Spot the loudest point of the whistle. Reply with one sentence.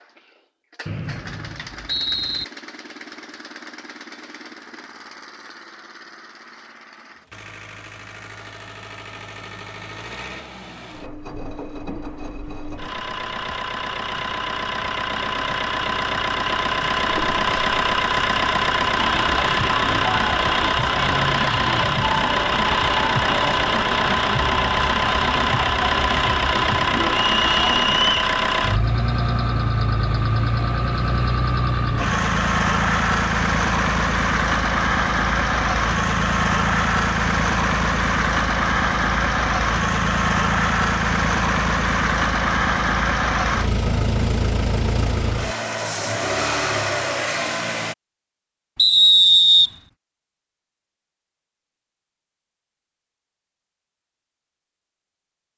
The loudest moment of the whistle is at 49 seconds.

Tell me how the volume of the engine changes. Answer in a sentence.
The loudness of the engine goes up.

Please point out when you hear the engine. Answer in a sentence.
You can hear the engine from 0.0 to 48.0 s.